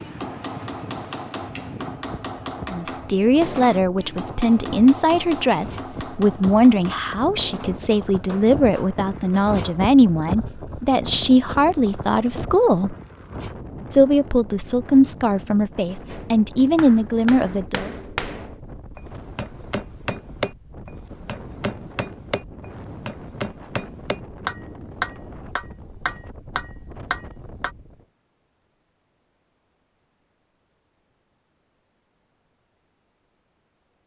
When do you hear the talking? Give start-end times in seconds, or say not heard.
2.7-12.9, 13.9-17.9.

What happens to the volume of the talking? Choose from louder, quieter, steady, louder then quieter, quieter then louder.
steady.